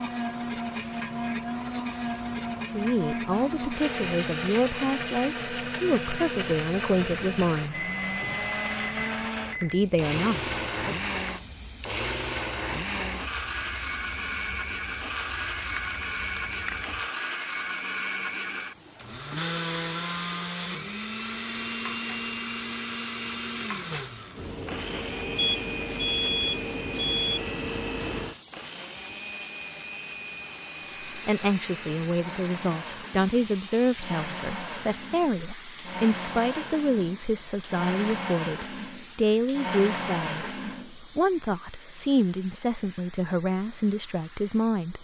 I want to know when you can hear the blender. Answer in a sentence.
You can hear the blender from 0.0 to 41.0 s.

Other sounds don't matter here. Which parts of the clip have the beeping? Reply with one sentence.
You can hear the beeping from 7.7 to 9.8 s and from 25.4 to 27.4 s.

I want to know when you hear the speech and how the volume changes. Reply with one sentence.
The speech can be heard from 2.7 to 7.8 s, at a steady volume; briefly from 9.6 to 10.9 s; and from 31.1 to 44.9 s, at a steady volume.